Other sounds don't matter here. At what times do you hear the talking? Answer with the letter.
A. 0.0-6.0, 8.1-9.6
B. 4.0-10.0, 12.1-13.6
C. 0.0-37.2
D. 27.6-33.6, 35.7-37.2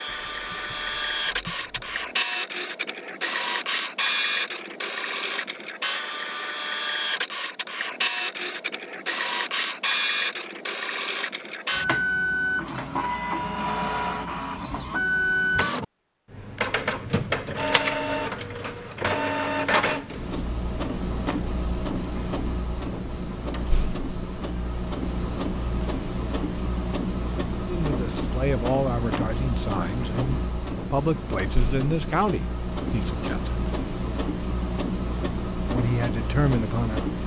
D.